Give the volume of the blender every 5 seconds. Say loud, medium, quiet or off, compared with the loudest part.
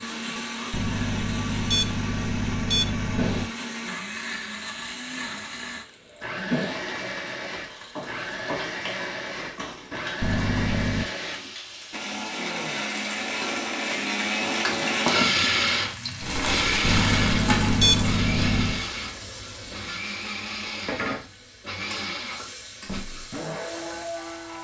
medium, medium, loud, loud, medium.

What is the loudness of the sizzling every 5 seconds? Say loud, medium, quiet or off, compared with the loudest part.
medium, medium, medium, loud, medium.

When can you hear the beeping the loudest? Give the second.
18 s.